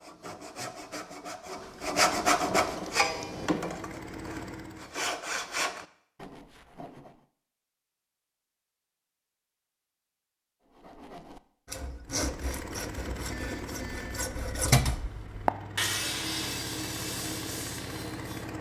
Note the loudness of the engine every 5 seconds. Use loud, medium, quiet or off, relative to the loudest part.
loud, off, loud, loud.